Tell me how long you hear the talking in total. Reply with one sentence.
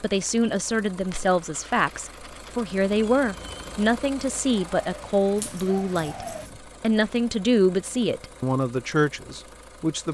You can hear the talking for 10 seconds altogether.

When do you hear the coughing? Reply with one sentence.
You can't hear the coughing here.